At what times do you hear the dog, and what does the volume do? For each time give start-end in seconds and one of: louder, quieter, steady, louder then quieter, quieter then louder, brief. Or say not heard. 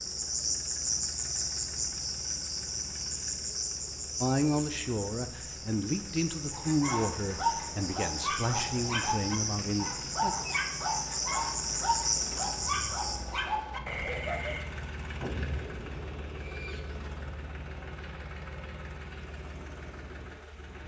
6.5-14.7 steady.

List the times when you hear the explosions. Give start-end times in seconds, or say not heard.
15.2-16.2.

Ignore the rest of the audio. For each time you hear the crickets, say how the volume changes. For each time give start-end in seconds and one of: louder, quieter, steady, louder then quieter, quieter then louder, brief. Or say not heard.
0.0-13.2 quieter then louder.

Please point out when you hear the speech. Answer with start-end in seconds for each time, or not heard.
4.2-10.3.